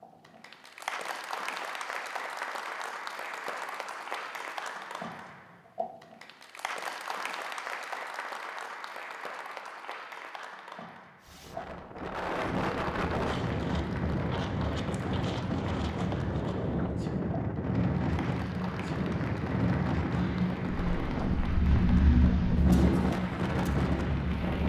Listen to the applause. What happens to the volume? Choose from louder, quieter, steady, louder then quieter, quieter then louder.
quieter.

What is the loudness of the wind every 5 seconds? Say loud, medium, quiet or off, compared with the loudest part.
off, off, loud, loud, loud.